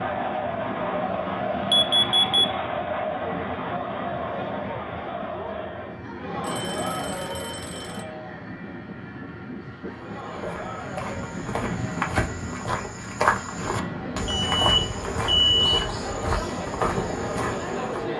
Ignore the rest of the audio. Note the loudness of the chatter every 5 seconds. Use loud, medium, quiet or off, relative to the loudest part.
loud, medium, medium, loud.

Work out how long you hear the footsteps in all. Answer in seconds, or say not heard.
8 s.